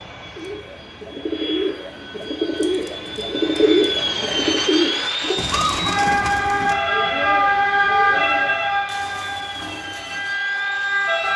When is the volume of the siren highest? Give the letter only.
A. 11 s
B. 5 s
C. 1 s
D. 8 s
D.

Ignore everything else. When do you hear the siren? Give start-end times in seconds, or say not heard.
5.5-11.3.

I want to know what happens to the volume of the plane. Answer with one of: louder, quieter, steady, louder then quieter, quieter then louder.
louder then quieter.